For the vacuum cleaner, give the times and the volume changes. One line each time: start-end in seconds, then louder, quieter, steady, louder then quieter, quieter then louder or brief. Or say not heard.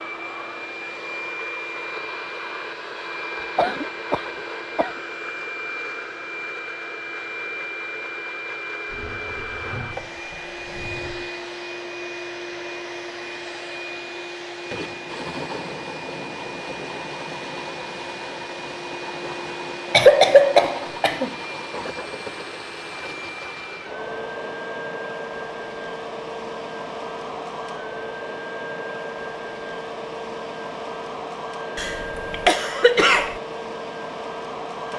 0.0-34.9 steady.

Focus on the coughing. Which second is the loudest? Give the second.
20 s.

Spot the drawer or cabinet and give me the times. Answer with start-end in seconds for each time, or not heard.
8.8-11.3.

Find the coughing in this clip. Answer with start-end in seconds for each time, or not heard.
3.4-5.0, 19.9-21.3, 31.8-33.4.